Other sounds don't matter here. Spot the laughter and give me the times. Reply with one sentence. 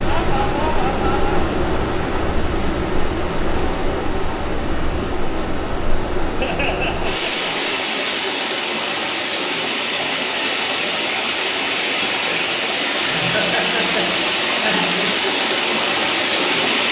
The laughter can be heard from 0.1 to 1.4 s, from 6.4 to 7.7 s and from 12.9 to 15.2 s.